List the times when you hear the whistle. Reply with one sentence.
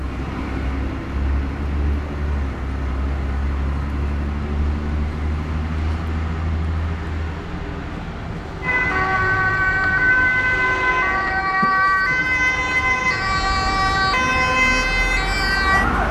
You can't hear the whistle here.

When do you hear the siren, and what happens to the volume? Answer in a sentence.
You can hear the siren from 8.6 to 16.0 s, at a steady volume.